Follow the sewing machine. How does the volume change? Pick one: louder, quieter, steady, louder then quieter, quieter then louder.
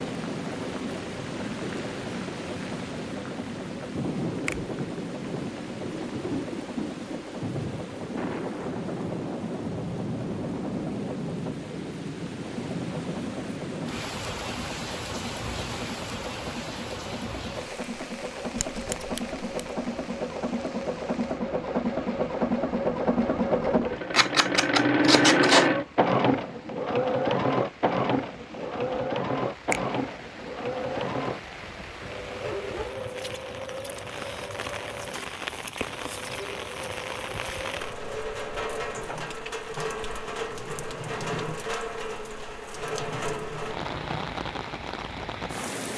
louder then quieter.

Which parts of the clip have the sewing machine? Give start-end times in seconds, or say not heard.
0.0-44.2.